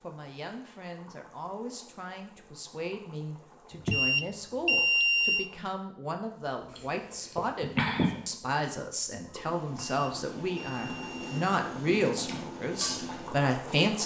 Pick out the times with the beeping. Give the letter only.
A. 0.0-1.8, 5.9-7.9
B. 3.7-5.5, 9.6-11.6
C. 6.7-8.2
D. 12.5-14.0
B.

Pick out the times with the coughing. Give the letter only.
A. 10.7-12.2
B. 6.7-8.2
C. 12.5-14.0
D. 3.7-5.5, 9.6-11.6
B.